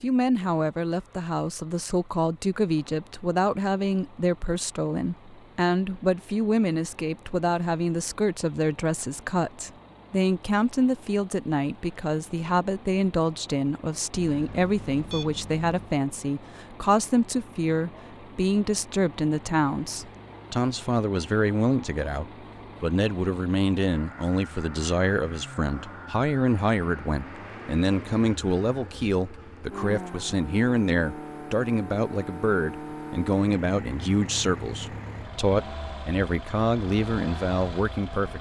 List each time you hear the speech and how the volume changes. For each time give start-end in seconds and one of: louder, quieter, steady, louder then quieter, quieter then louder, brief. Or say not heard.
0.0-38.3 steady.